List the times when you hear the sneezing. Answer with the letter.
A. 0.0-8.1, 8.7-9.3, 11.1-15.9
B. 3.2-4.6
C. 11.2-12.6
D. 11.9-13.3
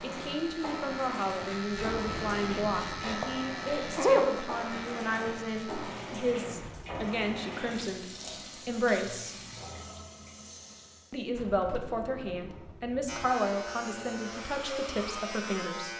B.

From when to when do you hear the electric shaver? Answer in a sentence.
The electric shaver can be heard from 0.0 to 6.0 s and from 13.1 to 15.9 s.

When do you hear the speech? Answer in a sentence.
You can hear the speech from 0.0 to 8.1 s, from 8.7 to 9.3 s and from 11.1 to 15.9 s.